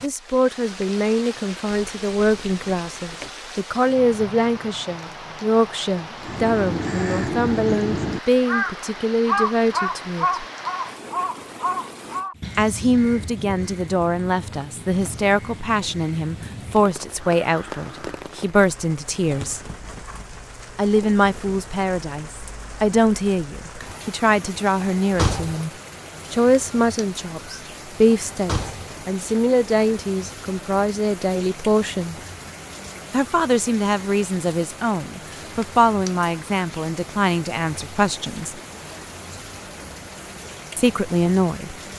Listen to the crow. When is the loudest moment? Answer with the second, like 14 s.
9 s.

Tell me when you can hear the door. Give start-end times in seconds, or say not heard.
1.7-3.4, 24.8-25.6, 28.3-28.9.